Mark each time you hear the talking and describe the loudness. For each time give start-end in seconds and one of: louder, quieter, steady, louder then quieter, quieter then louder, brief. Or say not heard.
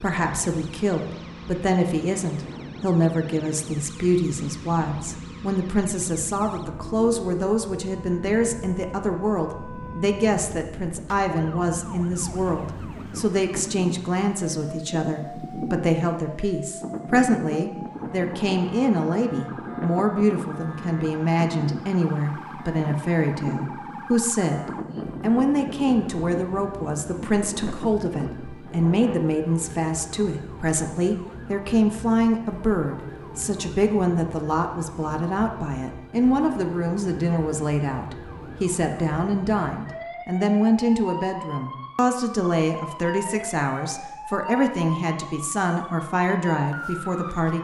0.0-47.6 steady.